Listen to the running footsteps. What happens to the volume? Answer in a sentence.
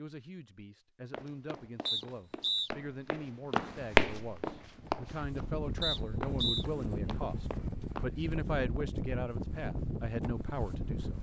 The volume of the running footsteps goes up, then down.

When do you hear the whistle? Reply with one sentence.
The whistle can be heard from 1.9 to 2.7 s and from 5.8 to 6.7 s.